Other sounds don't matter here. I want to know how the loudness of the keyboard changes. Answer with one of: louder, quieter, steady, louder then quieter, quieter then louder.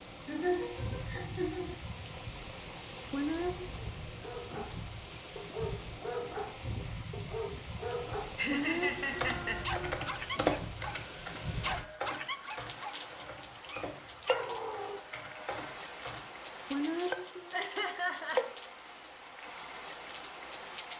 quieter.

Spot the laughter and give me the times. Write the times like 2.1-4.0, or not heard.
0.2-1.8, 8.3-9.8, 17.5-18.4.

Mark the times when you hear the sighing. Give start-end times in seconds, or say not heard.
3.1-3.7, 8.5-9.8, 16.7-17.6.